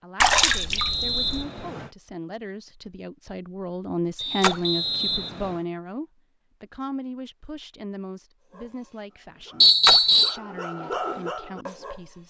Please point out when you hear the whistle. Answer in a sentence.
The whistle can be heard from 0.5 to 1.9 s, from 4.2 to 5.6 s and from 9.6 to 10.3 s.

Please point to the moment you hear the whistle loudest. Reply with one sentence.
The volume of the whistle peaks at 10 seconds.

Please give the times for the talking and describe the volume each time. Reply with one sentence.
You can hear the talking from 0.0 to 12.2 s, getting louder then quieter.